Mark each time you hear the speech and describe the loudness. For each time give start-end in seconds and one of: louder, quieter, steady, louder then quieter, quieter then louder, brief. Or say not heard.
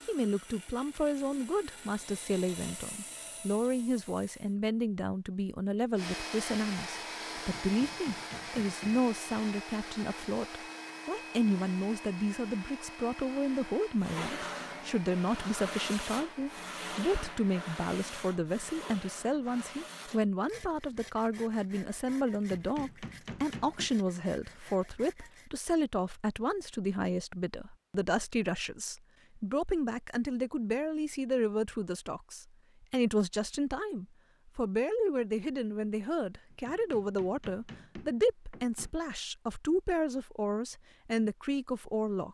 0.1-42.2 steady.